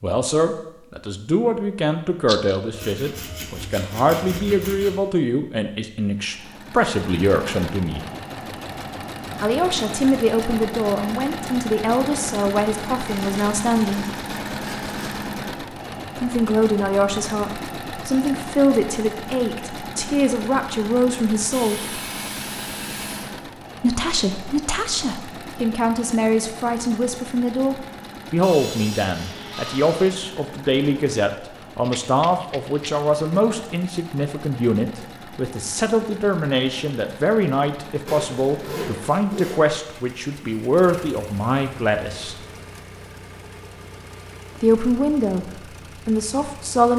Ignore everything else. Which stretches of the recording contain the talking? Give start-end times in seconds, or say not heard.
0.0-8.1, 9.4-14.1, 16.1-22.0, 23.8-42.4, 44.6-46.9.